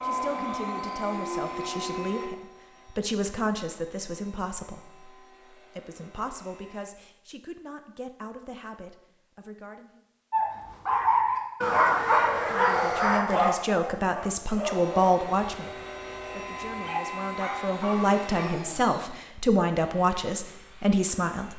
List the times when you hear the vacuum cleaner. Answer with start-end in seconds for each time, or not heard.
0.0-6.8, 14.6-21.5.